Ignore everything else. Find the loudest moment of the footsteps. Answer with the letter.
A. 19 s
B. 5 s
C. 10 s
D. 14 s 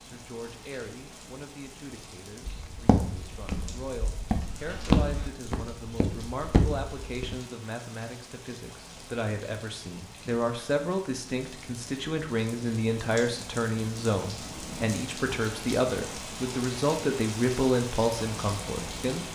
B.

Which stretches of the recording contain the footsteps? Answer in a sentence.
You can hear the footsteps from 2.5 to 7.3 s.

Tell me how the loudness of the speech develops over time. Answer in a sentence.
The volume of the speech goes up.